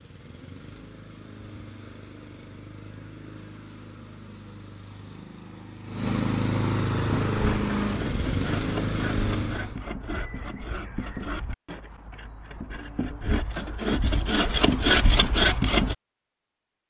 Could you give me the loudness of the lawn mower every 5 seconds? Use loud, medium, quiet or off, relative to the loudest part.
quiet, loud, off, off.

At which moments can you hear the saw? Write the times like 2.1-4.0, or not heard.
6.9-15.9.